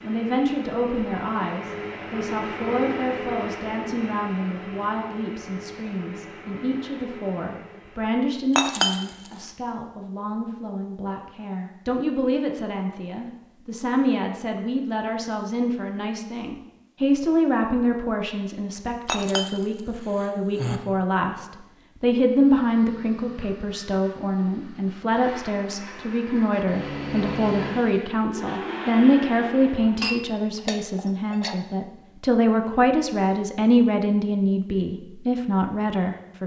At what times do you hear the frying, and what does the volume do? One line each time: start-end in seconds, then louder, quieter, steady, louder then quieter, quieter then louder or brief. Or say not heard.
not heard.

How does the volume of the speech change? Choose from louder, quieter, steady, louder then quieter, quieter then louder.
louder.